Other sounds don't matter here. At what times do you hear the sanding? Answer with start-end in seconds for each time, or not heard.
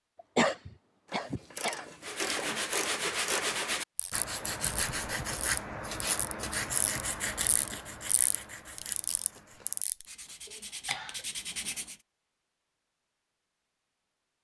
2.0-11.9.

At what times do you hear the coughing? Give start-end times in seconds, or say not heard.
0.3-1.9, 10.4-11.2.